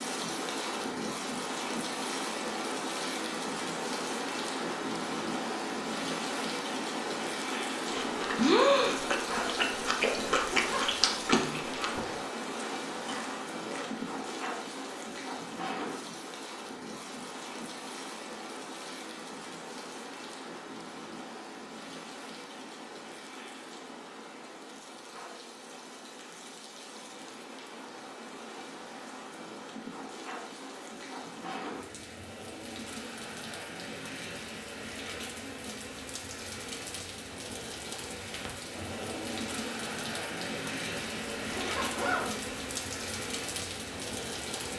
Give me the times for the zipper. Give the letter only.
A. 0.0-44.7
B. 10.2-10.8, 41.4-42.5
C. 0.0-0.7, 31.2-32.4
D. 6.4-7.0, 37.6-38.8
B.